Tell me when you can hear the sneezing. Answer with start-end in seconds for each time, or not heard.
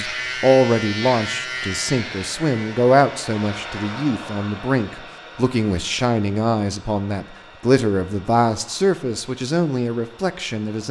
not heard.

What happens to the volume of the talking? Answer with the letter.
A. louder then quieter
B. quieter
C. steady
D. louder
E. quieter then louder
C.